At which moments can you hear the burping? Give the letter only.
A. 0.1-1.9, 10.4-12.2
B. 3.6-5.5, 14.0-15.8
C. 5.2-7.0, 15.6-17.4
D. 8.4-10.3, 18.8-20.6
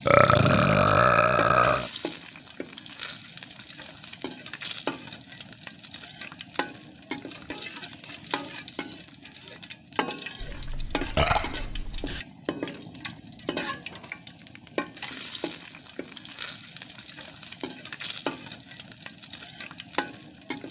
A.